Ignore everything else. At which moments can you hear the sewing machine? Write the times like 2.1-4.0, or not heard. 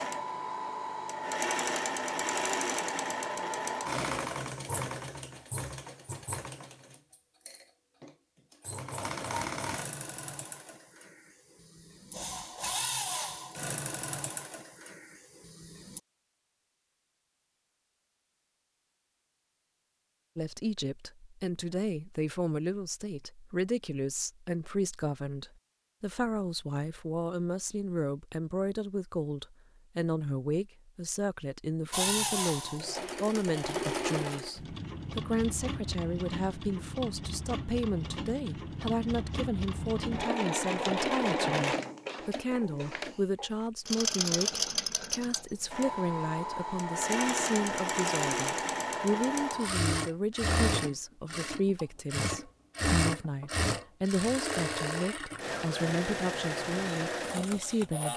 0.0-16.0, 31.9-58.1.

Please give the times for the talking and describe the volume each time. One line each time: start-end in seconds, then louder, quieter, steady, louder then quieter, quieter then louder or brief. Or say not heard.
20.4-58.1 steady.